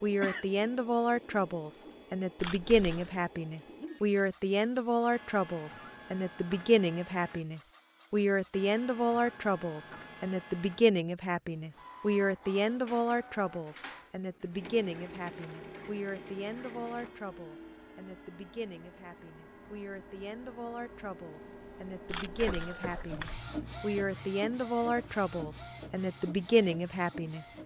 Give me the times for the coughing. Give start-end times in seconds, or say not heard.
0.2-0.7.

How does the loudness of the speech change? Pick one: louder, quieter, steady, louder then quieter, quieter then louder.
quieter then louder.